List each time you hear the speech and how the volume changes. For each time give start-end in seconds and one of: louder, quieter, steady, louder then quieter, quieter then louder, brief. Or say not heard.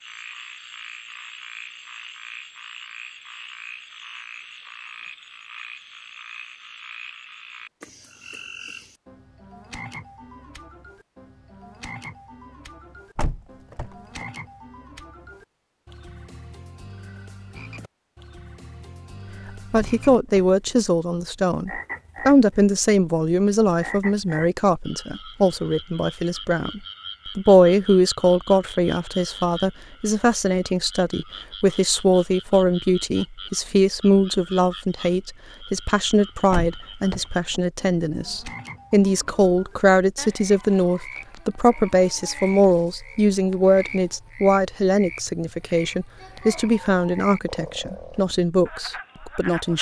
19.7-49.7 steady.